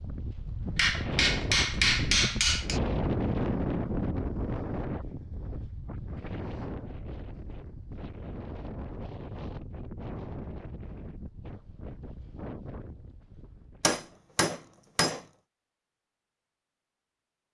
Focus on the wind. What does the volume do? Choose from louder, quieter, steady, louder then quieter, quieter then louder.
quieter.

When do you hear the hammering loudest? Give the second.
2 s.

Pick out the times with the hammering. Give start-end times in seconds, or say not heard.
0.8-2.8, 13.8-15.2.